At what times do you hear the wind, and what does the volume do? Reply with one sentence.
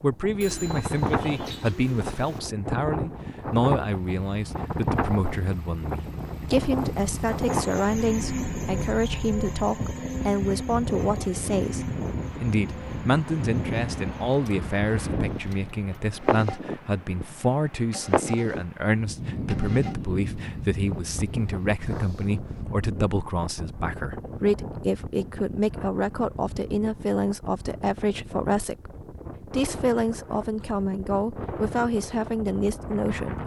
You can hear the wind from 0.0 to 33.4 s, getting quieter.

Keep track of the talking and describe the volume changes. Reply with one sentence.
The volume of the talking stays about the same.